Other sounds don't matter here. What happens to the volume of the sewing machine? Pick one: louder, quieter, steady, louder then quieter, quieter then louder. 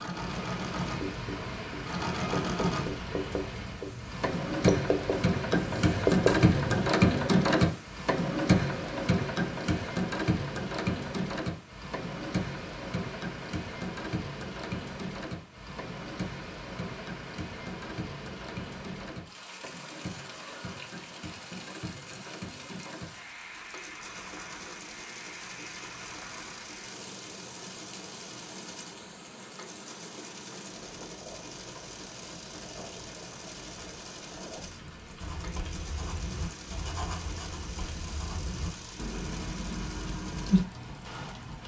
quieter.